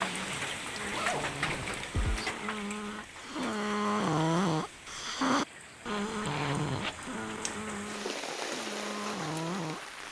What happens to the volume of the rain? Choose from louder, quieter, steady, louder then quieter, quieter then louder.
quieter then louder.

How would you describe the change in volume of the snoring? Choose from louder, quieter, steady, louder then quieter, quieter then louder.
louder then quieter.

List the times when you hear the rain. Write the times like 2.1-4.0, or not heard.
0.0-10.0.